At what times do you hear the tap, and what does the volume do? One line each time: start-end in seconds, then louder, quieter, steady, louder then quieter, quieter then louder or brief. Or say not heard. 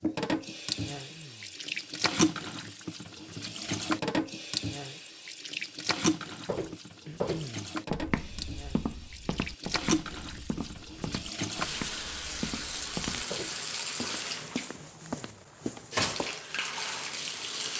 0.0-17.7 steady.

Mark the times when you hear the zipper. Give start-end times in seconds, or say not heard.
not heard.